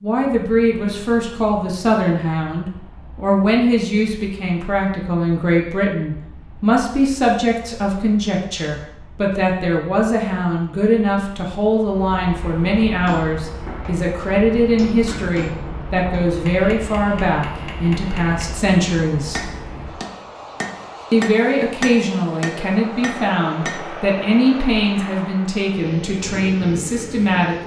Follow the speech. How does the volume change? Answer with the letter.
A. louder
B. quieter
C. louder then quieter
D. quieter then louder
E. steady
E.